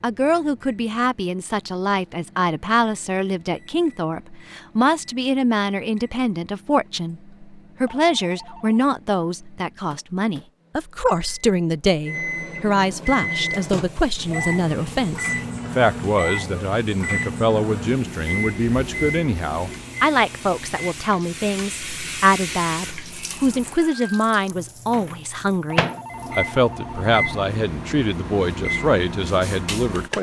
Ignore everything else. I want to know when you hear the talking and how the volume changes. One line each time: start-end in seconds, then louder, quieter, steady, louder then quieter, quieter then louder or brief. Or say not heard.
0.0-30.1 steady.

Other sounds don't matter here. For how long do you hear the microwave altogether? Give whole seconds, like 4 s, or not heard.
30 s.